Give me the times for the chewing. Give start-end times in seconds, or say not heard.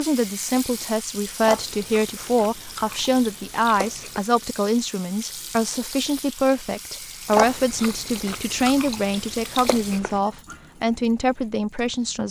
1.4-4.2, 7.3-10.2.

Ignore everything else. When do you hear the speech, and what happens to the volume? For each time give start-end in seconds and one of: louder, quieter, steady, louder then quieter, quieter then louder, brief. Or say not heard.
0.0-12.2 steady.